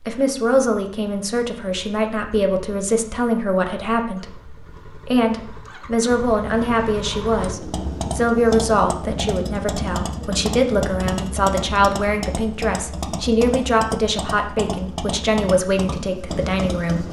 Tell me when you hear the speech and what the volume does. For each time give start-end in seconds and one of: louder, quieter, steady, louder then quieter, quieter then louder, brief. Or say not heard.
0.1-17.0 steady.